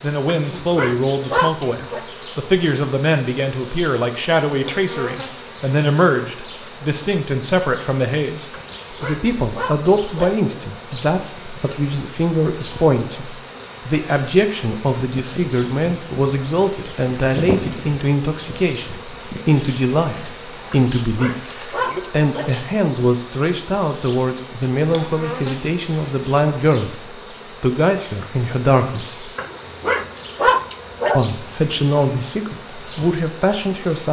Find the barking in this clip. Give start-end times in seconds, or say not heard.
0.2-2.0, 8.5-10.5, 20.7-22.5, 29.4-31.2.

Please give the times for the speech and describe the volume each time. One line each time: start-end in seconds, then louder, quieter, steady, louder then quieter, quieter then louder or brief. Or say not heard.
0.0-29.4 steady
31.1-34.0 brief.